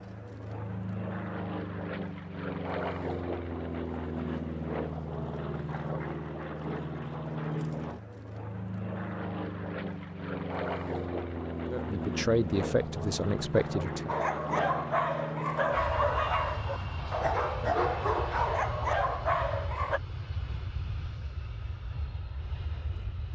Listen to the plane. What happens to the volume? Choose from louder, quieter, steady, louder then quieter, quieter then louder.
quieter.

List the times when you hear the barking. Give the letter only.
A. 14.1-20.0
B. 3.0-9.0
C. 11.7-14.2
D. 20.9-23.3
A.